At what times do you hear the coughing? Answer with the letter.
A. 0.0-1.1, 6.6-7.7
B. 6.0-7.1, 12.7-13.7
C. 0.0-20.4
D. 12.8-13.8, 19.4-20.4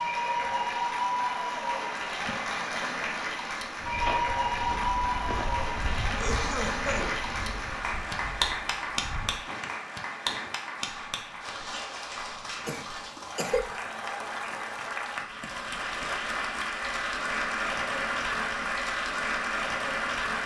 B.